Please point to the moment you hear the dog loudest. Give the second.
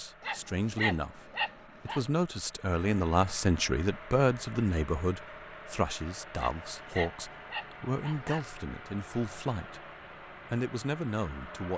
1 s.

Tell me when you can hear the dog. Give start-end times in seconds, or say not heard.
0.2-2.0, 6.3-8.4.